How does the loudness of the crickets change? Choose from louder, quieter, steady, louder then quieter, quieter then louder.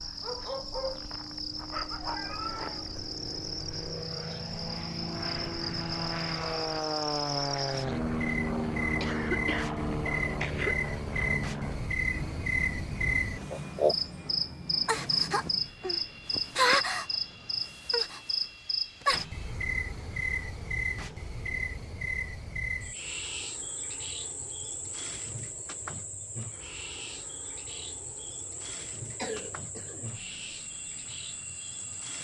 louder then quieter.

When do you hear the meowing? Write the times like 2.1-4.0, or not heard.
2.0-3.0.